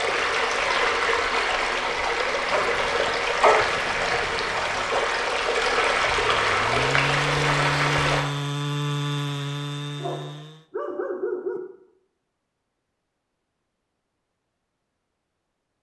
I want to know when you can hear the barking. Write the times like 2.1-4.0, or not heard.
2.5-5.0, 9.9-11.6.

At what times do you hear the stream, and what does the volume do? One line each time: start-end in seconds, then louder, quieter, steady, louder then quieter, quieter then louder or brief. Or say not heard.
0.0-8.2 steady.